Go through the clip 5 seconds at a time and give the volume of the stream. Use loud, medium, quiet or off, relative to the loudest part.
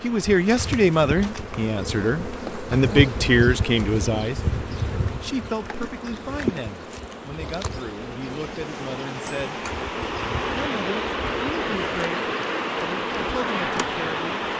quiet, medium, loud.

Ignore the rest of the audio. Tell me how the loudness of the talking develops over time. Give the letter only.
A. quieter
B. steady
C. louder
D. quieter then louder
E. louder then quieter
A.